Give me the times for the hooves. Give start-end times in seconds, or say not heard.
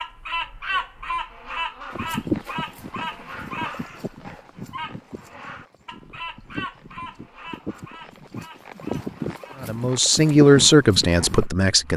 1.9-11.5.